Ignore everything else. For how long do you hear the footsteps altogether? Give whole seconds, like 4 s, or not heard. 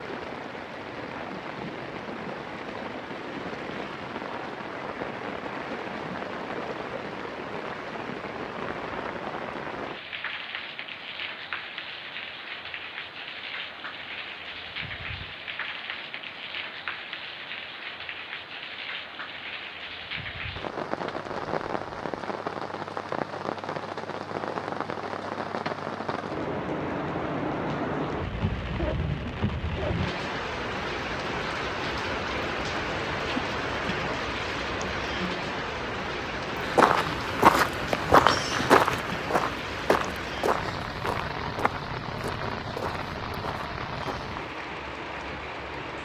8 s.